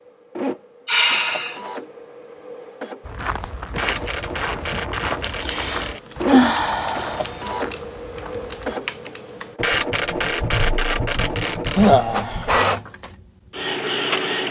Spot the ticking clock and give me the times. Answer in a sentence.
You can't hear the ticking clock here.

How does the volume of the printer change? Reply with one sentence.
The loudness of the printer goes up.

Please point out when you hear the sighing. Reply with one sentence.
You can hear the sighing from 0.8 to 1.6 s, from 5.4 to 7.2 s and from 11.8 to 12.6 s.